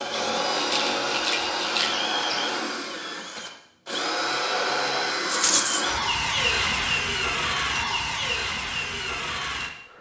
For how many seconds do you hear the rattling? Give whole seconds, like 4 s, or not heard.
2 s.